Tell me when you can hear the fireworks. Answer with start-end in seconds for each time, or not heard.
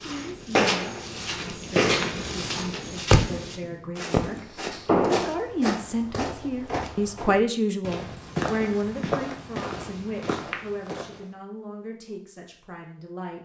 0.6-5.3.